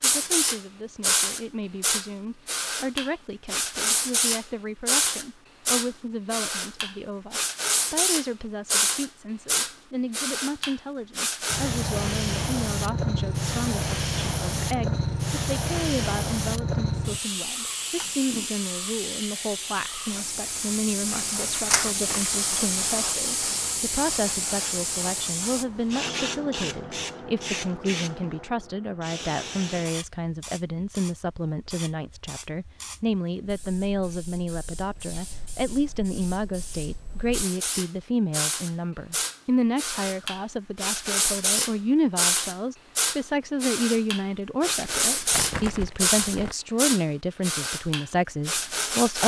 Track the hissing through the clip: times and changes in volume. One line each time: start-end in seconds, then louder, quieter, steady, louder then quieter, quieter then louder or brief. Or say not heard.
0.0-49.2 quieter then louder.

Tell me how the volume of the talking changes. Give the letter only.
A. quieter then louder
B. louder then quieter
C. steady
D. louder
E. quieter
D.